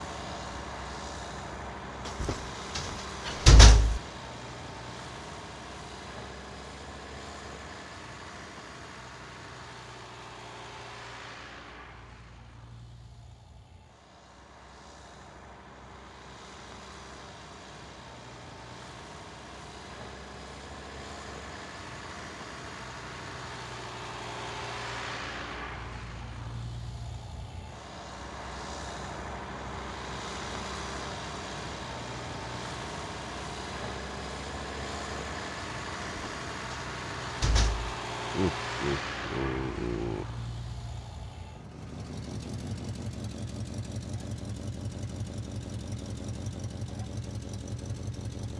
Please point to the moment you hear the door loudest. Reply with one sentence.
The volume of the door peaks at 4 seconds.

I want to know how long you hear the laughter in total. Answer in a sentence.
You can hear the laughter for 2 seconds altogether.